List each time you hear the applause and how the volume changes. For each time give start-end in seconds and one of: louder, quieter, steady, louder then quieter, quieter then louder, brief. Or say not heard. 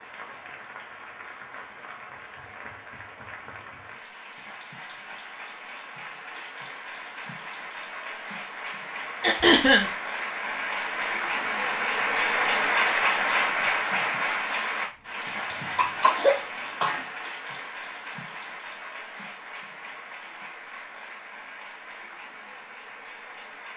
0.0-23.7 louder then quieter.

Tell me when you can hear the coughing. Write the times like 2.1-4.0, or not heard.
9.2-9.8, 15.5-17.1.